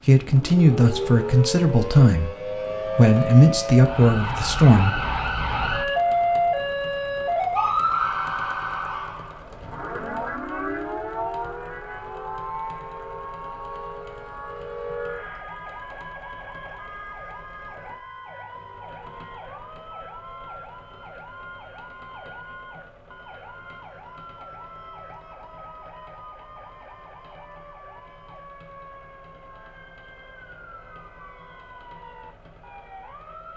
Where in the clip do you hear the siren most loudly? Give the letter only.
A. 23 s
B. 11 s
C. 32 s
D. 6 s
D.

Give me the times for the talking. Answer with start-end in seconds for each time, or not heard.
0.1-5.1.